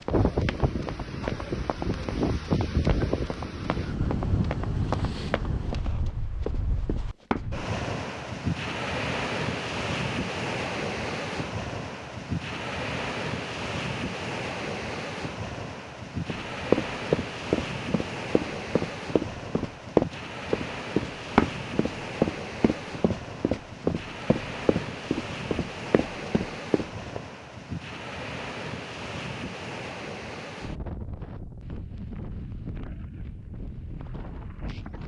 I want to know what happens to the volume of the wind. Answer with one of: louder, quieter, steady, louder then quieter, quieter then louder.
quieter.